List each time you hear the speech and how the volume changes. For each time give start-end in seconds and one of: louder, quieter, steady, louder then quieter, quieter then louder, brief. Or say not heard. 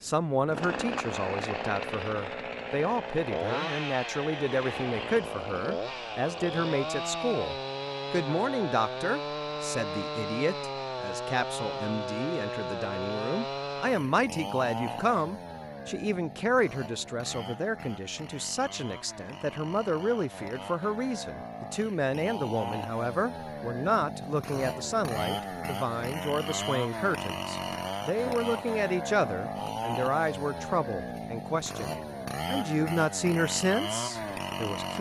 0.0-34.9 steady.